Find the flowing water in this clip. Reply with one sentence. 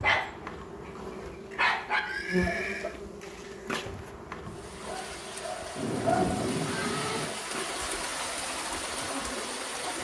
The flowing water can be heard from 4.5 to 9.9 s.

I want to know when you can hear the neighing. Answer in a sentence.
The neighing can be heard from 1.5 to 3.0 s and from 5.8 to 7.3 s.